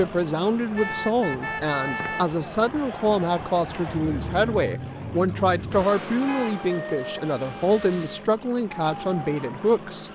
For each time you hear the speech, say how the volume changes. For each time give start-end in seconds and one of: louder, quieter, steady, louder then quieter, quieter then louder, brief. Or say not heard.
0.0-10.0 steady.